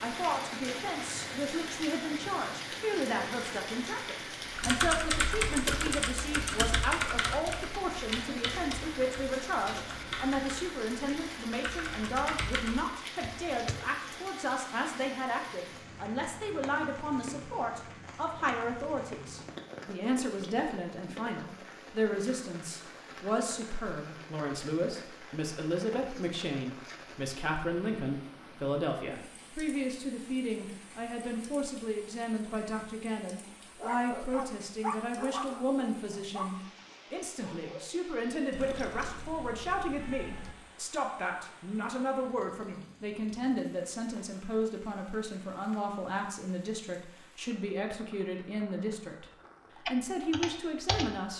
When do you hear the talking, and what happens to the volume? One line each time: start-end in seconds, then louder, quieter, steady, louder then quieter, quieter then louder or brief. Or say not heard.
0.0-49.2 steady
49.9-51.3 brief.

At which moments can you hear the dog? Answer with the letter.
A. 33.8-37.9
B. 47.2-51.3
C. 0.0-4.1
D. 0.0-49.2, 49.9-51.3
A.